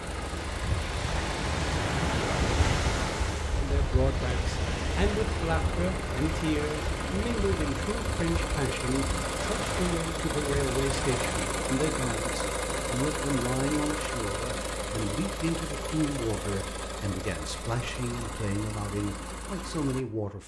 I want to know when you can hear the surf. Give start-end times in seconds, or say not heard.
0.0-11.4.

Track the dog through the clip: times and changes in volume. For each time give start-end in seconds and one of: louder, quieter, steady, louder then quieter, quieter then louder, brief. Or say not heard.
not heard.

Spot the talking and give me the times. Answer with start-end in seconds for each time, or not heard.
3.5-20.4.